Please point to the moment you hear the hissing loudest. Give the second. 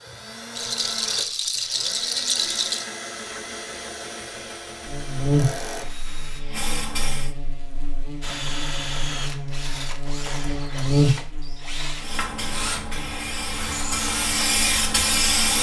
15 s.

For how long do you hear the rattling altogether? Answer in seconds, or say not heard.
2 s.